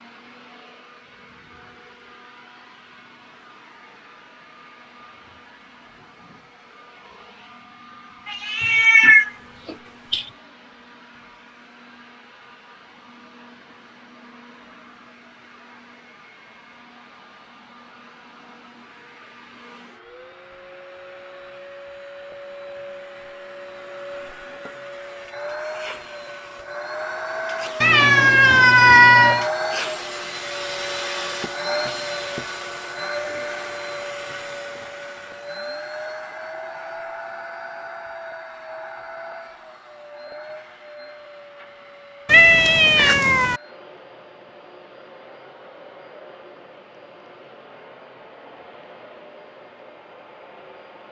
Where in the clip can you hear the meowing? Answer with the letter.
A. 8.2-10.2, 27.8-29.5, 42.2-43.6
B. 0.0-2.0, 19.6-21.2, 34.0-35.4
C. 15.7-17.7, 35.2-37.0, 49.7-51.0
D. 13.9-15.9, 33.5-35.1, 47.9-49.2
A.